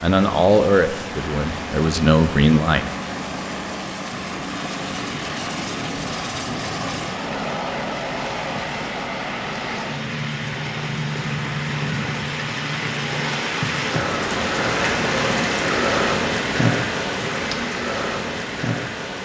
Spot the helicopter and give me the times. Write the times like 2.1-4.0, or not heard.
0.0-13.4.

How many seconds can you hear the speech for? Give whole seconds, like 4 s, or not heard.
3 s.